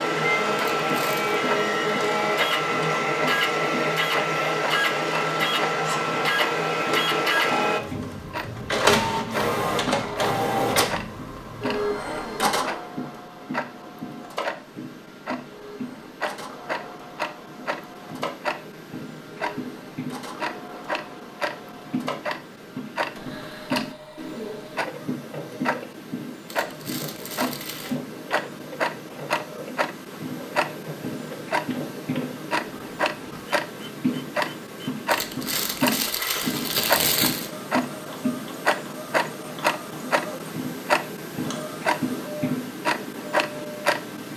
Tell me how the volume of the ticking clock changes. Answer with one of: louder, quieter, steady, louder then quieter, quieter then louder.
louder.